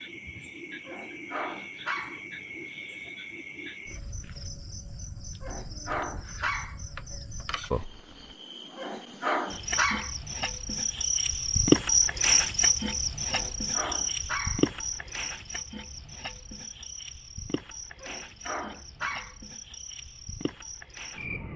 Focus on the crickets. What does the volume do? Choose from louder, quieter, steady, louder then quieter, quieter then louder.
louder then quieter.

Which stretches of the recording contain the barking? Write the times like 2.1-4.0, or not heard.
0.8-2.2, 5.4-6.8, 8.8-10.1, 13.3-14.7, 18.0-19.4.